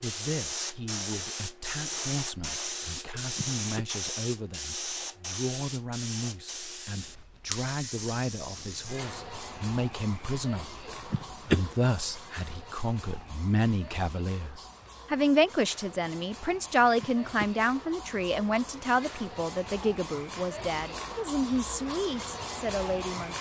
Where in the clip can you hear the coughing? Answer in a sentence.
The coughing can be heard from 3.1 to 3.9 s, from 10.8 to 11.7 s and from 17.0 to 17.5 s.